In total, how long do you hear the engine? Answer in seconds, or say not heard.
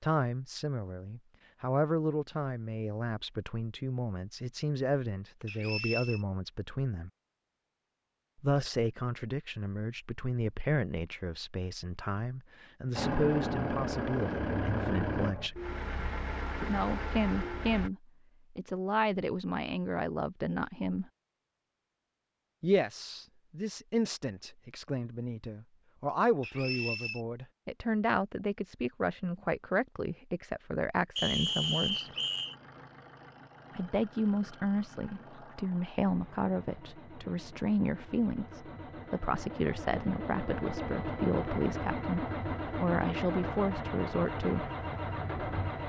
19 s.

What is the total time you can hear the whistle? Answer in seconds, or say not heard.
3 s.